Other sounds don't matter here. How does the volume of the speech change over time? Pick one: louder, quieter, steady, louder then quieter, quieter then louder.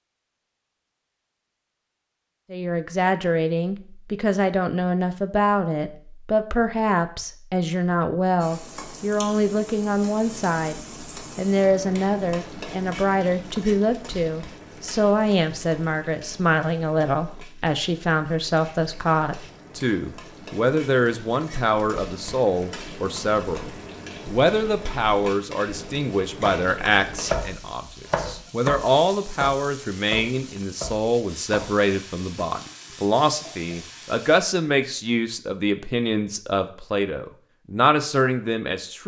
steady.